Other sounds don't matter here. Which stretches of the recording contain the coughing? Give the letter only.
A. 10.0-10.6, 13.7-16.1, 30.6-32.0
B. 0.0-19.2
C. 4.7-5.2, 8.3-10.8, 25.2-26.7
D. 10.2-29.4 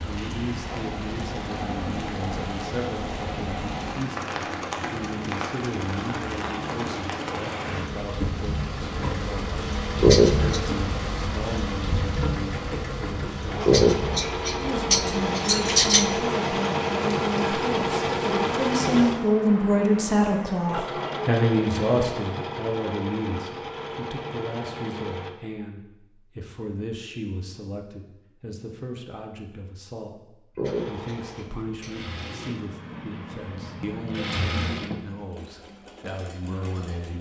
A.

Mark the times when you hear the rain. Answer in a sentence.
You can hear the rain from 0.0 to 19.2 s.